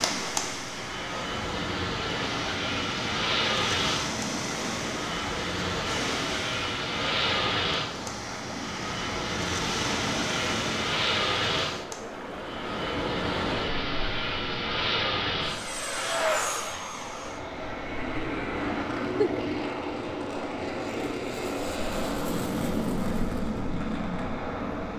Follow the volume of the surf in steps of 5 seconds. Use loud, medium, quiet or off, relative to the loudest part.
loud, loud, loud, medium, medium.